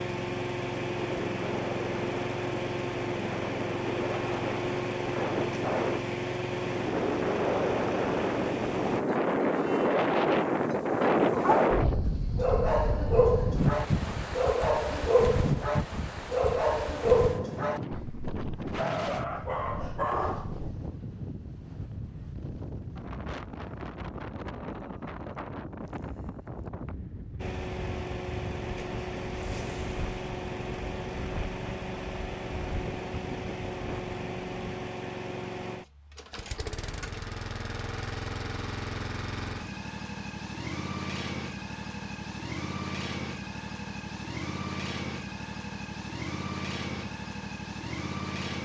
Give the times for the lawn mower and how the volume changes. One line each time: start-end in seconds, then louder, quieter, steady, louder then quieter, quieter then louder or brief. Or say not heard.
0.0-9.1 steady
27.4-48.6 steady.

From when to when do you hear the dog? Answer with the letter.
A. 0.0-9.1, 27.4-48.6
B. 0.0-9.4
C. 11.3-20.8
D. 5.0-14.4
C.